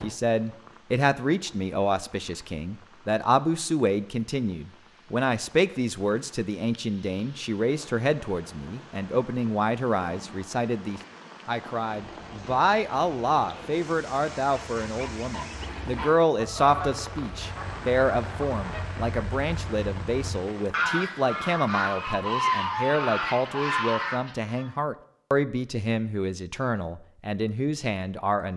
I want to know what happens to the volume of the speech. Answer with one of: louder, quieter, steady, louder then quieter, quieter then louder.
steady.